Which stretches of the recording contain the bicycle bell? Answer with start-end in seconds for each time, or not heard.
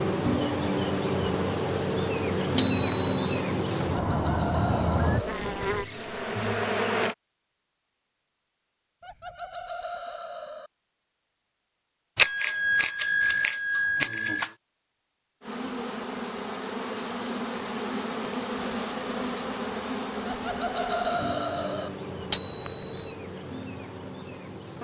2.5-3.1, 12.2-14.6, 22.3-23.1.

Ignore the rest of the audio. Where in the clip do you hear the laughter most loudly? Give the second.
21 s.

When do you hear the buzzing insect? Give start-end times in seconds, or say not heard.
0.0-7.2, 15.4-24.7.